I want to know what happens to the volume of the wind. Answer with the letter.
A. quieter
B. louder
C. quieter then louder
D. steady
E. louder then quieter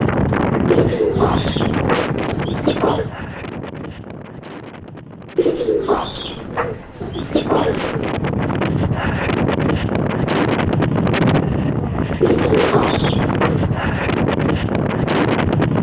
C.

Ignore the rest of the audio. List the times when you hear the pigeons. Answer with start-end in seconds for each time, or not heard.
0.7-3.1, 5.3-8.1, 12.2-13.7.